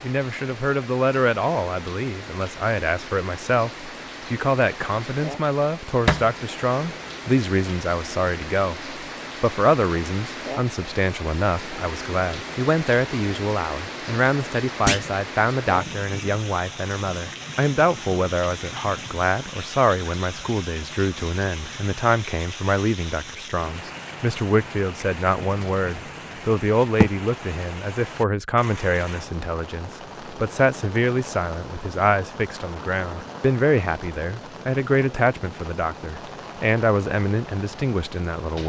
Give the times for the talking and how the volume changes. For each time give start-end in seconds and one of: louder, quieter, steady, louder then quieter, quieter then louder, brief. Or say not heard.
0.0-38.6 steady.